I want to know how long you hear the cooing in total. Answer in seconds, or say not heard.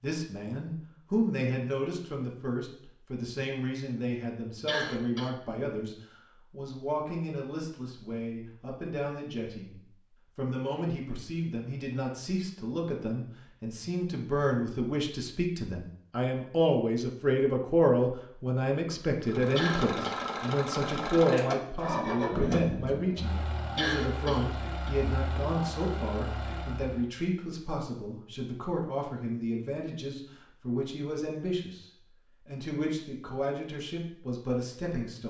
not heard.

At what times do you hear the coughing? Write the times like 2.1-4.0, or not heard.
4.7-5.3, 19.6-20.2, 23.8-24.9.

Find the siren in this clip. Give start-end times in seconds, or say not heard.
not heard.